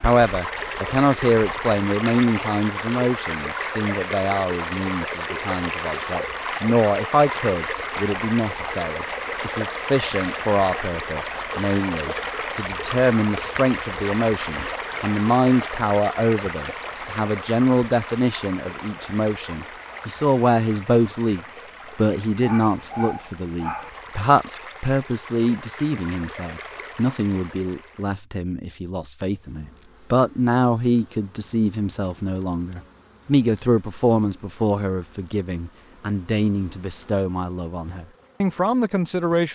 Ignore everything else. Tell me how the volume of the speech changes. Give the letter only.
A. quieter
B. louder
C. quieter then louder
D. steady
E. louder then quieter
D.